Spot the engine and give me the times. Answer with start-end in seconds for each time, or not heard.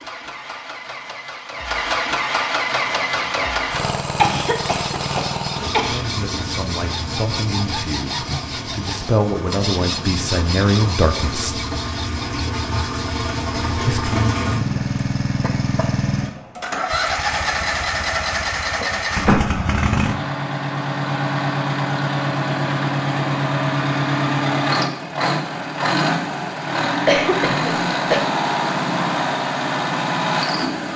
0.0-30.9.